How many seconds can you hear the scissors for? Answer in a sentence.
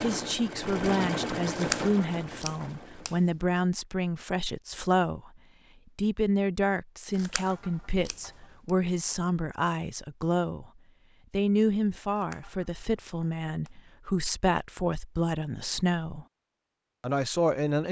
The scissors can be heard for 5 seconds in total.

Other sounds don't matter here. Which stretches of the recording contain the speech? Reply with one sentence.
You can hear the speech from 0.0 to 5.3 s, from 6.0 to 10.7 s, from 11.3 to 16.2 s and from 17.0 to 17.8 s.